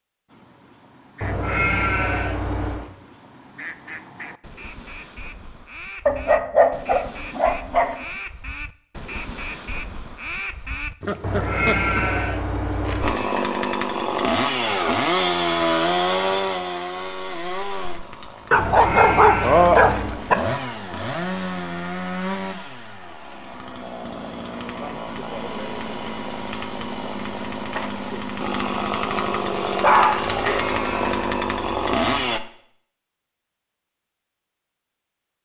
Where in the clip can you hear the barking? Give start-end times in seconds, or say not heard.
6.0-8.1, 18.5-20.4, 29.8-31.2.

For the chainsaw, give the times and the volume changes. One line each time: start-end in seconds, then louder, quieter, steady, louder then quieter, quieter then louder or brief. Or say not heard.
13.0-32.4 quieter then louder.